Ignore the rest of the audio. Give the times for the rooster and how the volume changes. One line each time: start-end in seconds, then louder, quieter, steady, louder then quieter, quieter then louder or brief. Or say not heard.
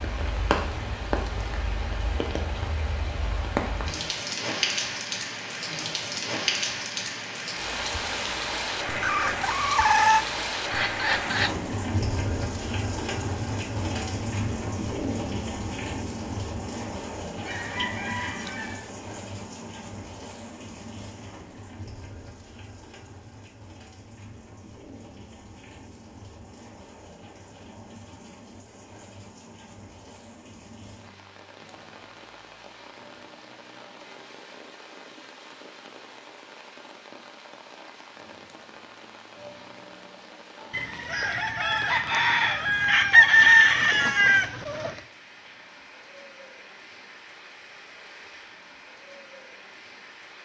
9.0-11.5 brief
17.4-18.9 brief
40.7-45.0 louder then quieter.